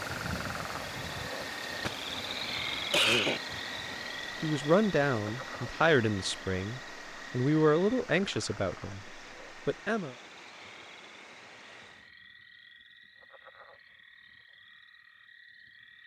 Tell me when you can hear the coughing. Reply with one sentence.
You can hear the coughing from 1.4 to 1.9 s and from 2.9 to 3.4 s.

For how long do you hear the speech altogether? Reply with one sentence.
The speech can be heard for 6 seconds in total.